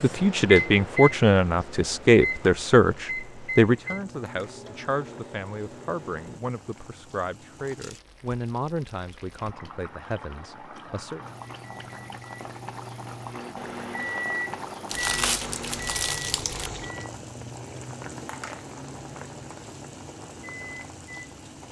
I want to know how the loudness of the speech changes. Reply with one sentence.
The volume of the speech goes down.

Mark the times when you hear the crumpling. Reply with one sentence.
The crumpling can be heard from 14.8 to 16.7 s.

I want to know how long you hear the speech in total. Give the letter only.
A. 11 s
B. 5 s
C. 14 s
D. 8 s
A.